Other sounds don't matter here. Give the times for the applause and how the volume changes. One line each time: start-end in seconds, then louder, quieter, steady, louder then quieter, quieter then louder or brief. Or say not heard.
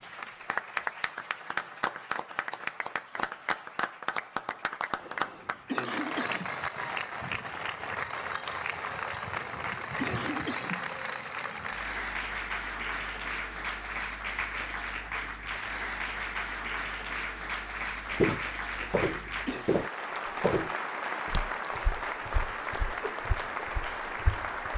0.0-24.7 steady.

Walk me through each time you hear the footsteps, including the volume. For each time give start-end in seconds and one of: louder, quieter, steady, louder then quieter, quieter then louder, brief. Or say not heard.
18.1-24.5 quieter.